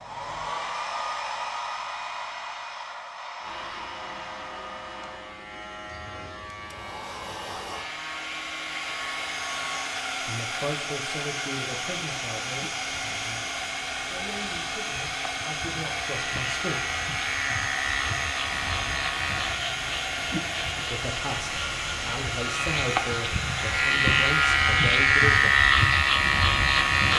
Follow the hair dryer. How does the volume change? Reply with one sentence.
The loudness of the hair dryer stays about the same.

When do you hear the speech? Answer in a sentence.
The speech can be heard from 10.2 to 16.8 s and from 20.8 to 25.6 s.